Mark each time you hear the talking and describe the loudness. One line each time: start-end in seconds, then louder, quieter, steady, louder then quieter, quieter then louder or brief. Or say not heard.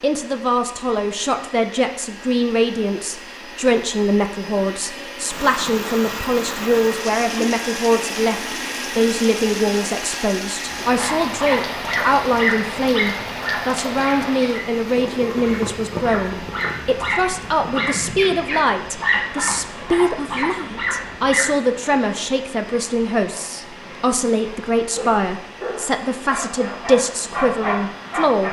0.0-28.4 steady.